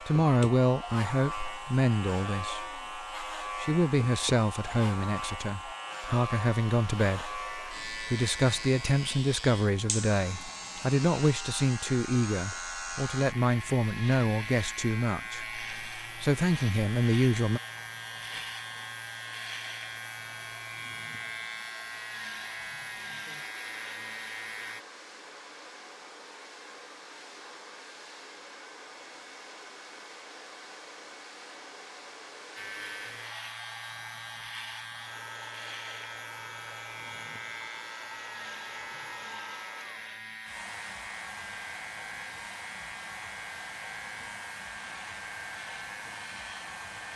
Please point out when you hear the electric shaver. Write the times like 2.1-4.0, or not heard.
0.0-24.9, 32.5-47.1.